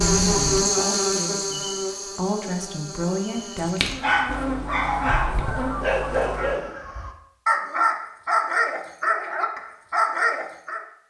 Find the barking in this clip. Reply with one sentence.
You can hear the barking from 3.5 to 10.8 s.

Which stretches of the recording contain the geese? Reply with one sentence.
You can hear the geese from 4.2 to 6.7 s.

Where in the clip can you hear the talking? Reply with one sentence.
The talking can be heard from 0.0 to 3.8 s.